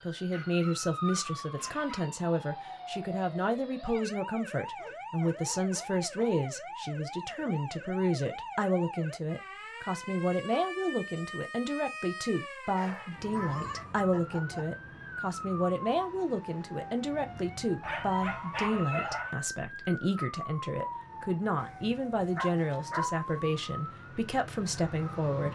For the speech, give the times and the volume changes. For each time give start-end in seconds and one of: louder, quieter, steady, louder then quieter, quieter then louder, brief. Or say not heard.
0.0-25.5 steady.